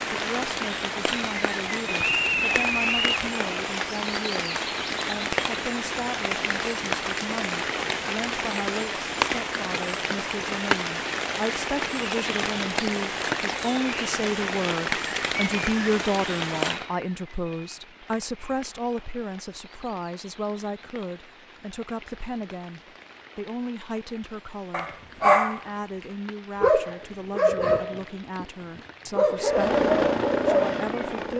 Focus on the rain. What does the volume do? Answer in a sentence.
The loudness of the rain goes down.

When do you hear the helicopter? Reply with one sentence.
You can hear the helicopter from 29.4 to 31.3 s.